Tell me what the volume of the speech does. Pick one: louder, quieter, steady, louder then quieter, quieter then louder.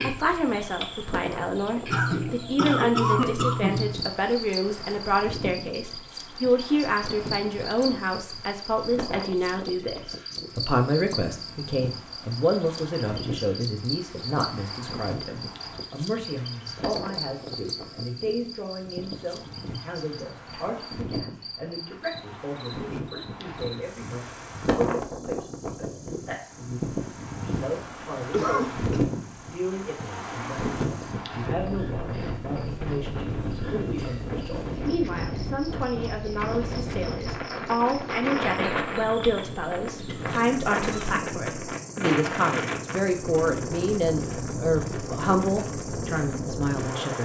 quieter then louder.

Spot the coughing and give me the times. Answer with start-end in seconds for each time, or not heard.
1.9-4.0, 28.3-29.0, 40.0-41.1.